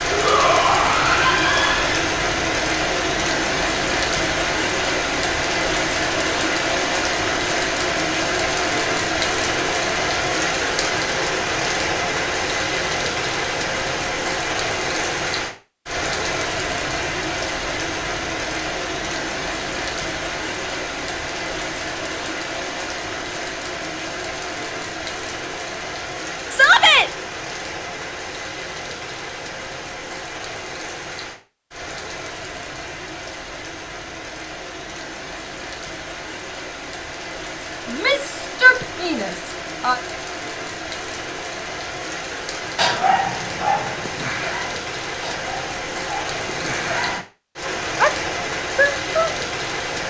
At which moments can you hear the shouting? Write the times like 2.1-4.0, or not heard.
0.1-2.0, 26.5-27.1, 37.9-40.0.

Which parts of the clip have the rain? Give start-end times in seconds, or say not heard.
0.0-50.0.